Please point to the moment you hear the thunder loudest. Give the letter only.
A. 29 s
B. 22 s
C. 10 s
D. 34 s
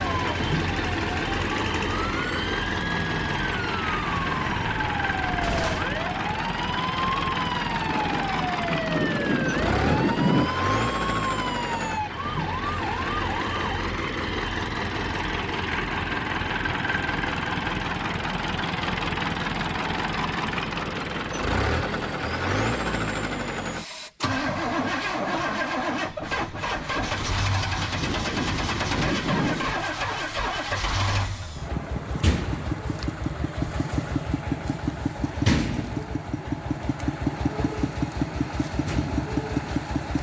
C.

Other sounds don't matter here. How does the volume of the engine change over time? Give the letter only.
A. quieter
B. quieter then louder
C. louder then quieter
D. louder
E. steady
E.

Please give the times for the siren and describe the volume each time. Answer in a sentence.
You can hear the siren from 0.0 to 13.8 s, at a steady volume.